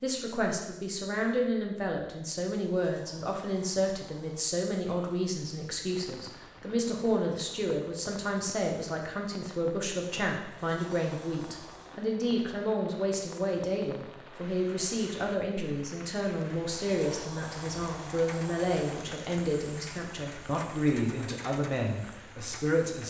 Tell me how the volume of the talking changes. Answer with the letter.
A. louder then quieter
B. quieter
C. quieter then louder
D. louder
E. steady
E.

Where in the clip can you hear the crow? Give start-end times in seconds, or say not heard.
not heard.